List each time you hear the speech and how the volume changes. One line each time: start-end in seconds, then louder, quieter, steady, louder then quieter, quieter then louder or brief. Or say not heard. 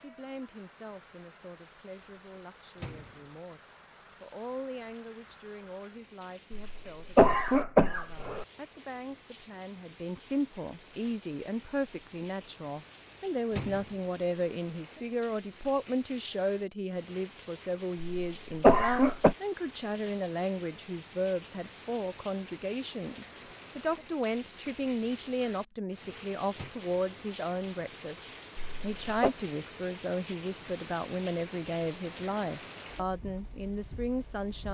0.0-34.6 louder.